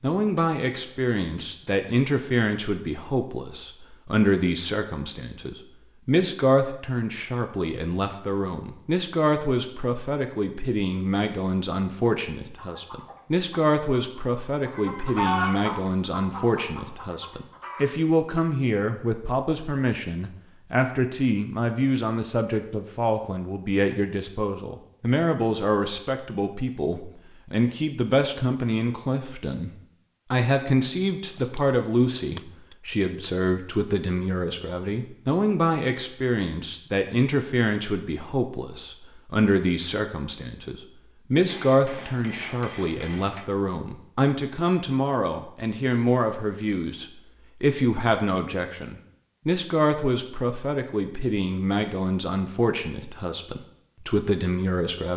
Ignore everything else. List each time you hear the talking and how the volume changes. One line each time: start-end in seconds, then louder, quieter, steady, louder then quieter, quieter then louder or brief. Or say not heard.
0.0-29.7 steady
30.3-55.1 steady.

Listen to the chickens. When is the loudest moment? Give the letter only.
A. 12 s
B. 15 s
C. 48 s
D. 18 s
B.